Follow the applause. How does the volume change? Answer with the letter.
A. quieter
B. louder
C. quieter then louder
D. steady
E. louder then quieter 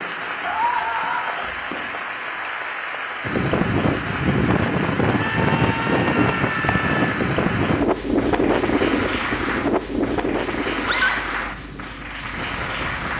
D.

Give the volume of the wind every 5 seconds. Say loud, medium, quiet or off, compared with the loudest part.
loud, loud, medium.